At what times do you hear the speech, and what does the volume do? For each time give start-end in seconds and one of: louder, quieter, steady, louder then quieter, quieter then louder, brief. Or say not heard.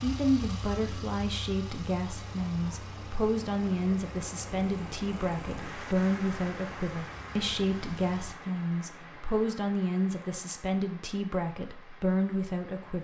0.0-12.9 steady.